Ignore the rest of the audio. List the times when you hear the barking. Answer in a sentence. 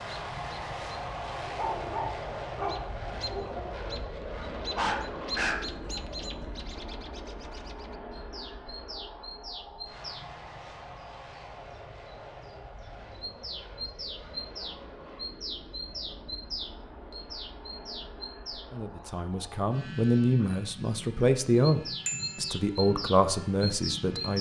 You can hear the barking from 1.3 to 4.0 s and from 4.8 to 6.0 s.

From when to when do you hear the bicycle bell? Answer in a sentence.
The bicycle bell can be heard from 22.1 to 22.6 s.